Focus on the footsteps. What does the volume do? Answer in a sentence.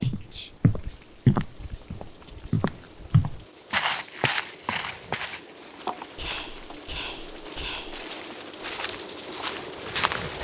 The volume of the footsteps goes down, then up.